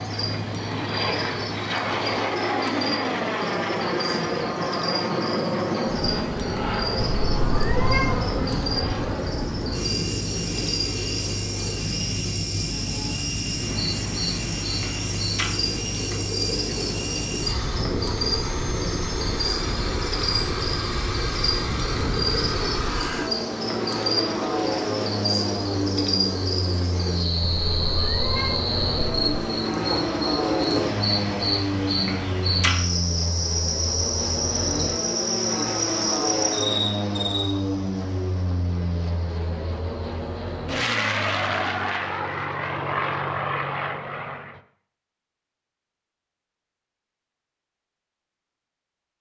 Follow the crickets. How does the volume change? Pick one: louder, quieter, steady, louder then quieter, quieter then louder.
louder.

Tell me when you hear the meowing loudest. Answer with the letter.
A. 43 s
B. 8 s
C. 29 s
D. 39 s
B.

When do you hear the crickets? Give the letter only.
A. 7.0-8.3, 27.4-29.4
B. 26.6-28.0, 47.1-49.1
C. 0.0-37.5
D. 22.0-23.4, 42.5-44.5
C.